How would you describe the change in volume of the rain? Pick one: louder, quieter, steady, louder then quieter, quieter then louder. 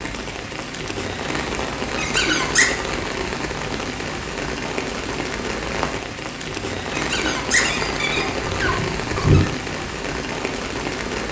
steady.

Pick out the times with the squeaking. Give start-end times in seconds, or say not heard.
1.9-2.8, 6.9-9.5.